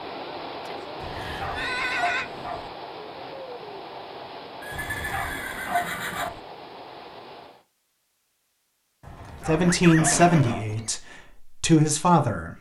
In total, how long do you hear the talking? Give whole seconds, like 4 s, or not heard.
3 s.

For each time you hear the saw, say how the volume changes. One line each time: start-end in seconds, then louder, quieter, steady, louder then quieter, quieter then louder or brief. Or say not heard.
not heard.